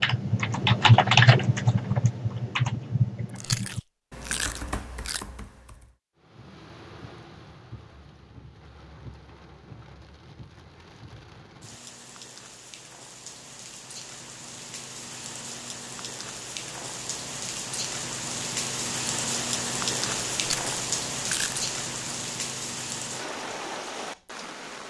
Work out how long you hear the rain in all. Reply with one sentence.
You can hear the rain for 19 seconds altogether.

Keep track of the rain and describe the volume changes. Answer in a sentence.
The loudness of the rain goes up.